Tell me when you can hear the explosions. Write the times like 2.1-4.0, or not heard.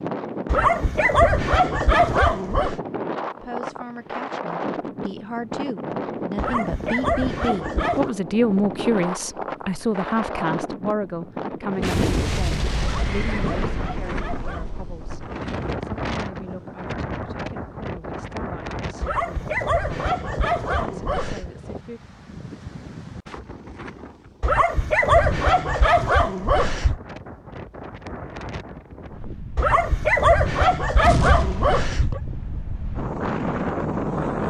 11.8-15.3, 31.0-31.8.